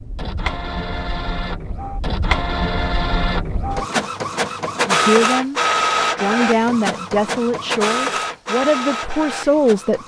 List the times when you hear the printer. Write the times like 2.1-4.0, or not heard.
0.0-10.0.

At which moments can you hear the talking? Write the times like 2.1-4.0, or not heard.
4.8-10.0.